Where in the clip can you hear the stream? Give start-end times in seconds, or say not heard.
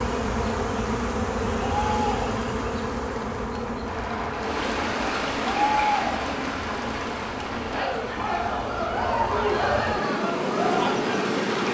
4.3-11.6.